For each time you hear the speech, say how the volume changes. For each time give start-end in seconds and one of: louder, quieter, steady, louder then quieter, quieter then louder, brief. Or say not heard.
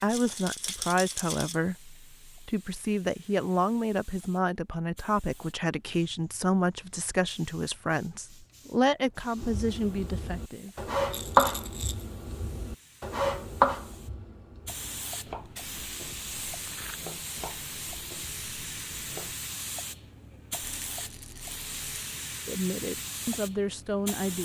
0.0-10.7 steady
22.4-24.4 brief.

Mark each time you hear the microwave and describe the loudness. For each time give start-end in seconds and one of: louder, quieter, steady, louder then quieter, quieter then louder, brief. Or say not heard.
not heard.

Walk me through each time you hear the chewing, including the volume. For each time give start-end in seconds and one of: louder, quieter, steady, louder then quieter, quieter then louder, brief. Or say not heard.
not heard.